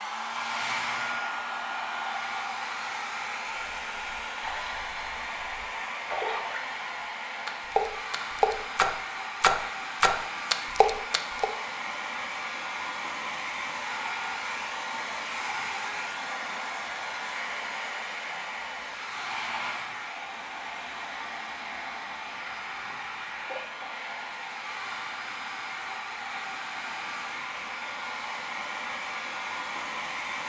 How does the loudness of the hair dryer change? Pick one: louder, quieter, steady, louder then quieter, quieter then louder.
steady.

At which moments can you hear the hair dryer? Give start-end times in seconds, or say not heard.
0.0-30.4.